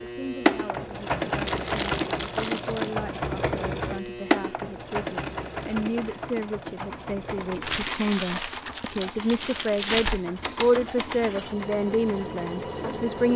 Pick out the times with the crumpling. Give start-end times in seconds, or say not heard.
1.4-3.0, 7.6-10.2.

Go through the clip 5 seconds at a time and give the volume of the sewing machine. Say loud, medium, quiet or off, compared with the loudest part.
loud, medium, medium.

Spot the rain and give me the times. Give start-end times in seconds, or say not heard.
not heard.